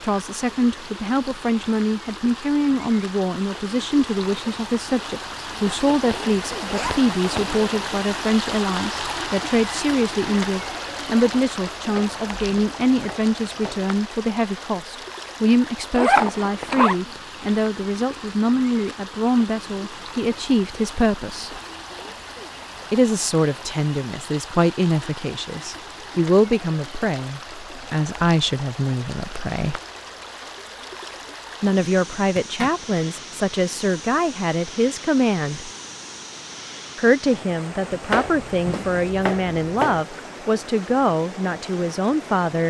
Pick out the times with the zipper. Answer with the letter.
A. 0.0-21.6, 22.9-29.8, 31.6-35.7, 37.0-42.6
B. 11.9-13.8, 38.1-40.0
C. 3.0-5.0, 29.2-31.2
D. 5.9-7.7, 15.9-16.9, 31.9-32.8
D.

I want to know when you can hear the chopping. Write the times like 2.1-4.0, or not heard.
11.9-13.8, 38.1-40.0.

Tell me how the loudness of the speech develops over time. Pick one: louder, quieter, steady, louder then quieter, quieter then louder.
steady.